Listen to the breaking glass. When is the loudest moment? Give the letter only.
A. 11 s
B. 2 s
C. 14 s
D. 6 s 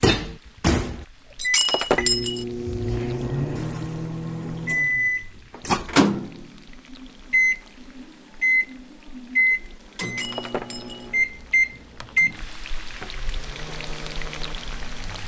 B.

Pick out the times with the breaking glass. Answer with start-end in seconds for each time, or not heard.
1.4-2.5, 10.0-11.1.